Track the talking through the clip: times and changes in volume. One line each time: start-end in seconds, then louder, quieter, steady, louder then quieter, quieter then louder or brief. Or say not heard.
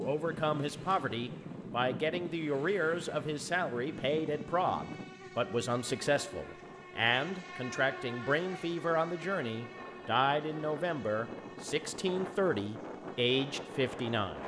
0.0-14.4 steady.